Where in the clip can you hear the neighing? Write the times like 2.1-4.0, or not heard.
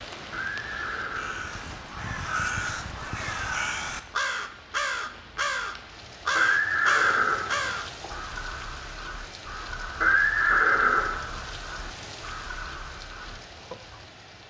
0.3-2.0, 6.3-8.1, 10.0-11.4.